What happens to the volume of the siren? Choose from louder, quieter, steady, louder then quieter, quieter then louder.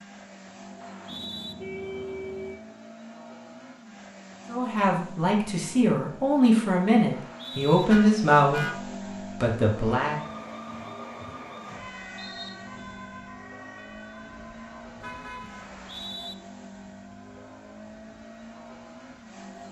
quieter.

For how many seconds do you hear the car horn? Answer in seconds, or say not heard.
3 s.